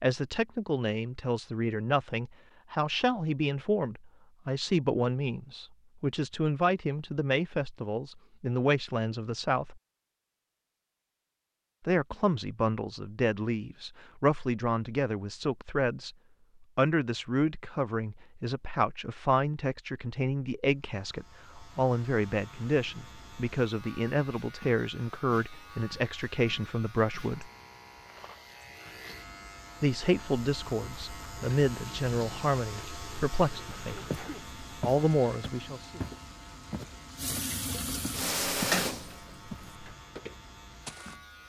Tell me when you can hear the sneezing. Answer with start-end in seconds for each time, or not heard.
34.0-34.5.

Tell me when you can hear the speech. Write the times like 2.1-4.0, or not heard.
0.0-9.8, 11.8-27.5, 29.8-36.0.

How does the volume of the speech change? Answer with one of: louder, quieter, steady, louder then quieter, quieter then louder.
steady.